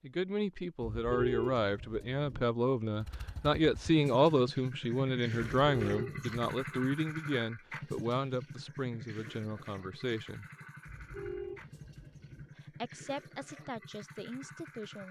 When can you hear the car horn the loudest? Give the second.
1 s.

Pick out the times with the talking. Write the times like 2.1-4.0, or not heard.
0.0-10.4, 12.6-15.0.